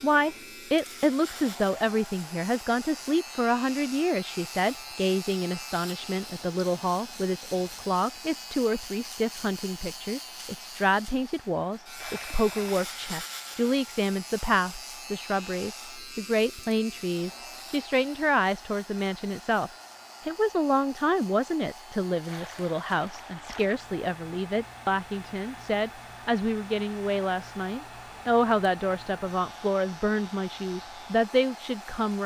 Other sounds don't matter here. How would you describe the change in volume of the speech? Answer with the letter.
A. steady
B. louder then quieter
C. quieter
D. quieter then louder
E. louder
A.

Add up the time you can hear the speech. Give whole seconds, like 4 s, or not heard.
32 s.